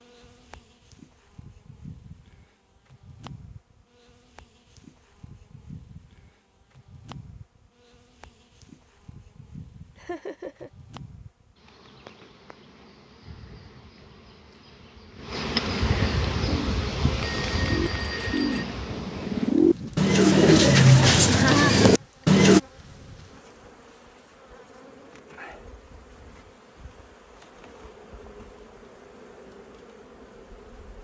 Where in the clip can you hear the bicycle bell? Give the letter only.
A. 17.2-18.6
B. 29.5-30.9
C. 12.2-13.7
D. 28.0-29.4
A.